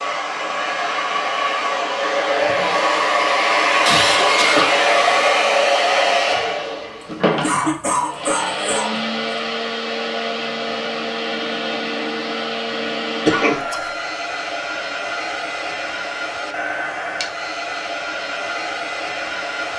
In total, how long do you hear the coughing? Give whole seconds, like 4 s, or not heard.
3 s.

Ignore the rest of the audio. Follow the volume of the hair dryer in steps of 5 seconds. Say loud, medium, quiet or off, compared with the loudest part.
loud, loud, medium, medium.